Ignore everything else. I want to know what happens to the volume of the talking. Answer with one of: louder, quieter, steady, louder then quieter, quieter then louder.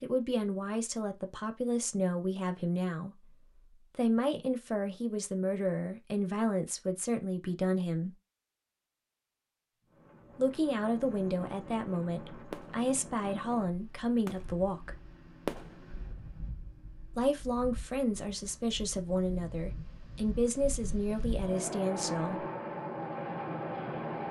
steady.